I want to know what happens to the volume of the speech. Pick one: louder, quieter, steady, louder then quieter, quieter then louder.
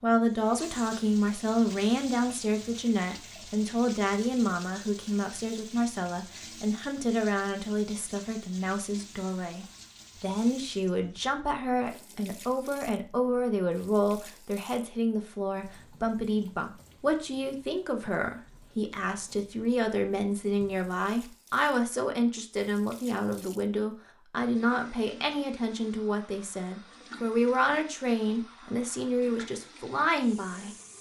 steady.